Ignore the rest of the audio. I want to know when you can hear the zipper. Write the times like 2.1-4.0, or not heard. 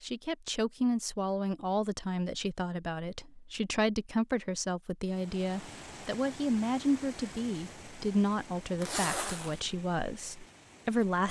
8.8-9.6.